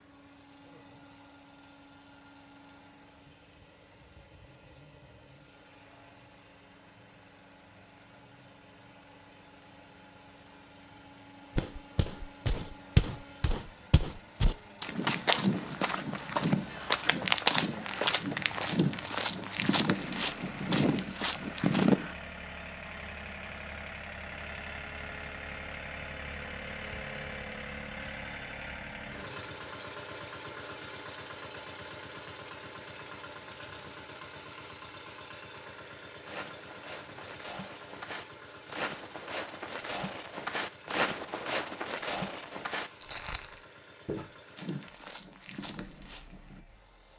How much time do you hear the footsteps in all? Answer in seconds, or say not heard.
21 s.